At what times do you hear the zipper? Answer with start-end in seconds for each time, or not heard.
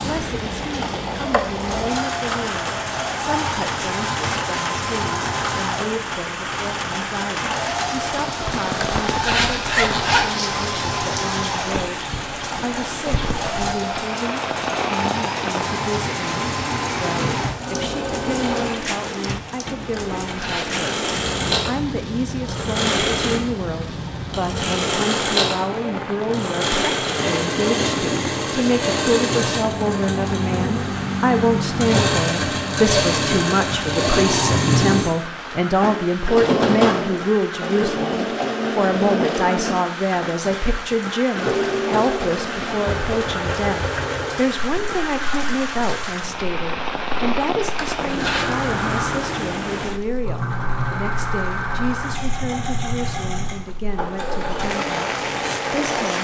9.1-10.3, 19.9-20.8, 47.8-48.5.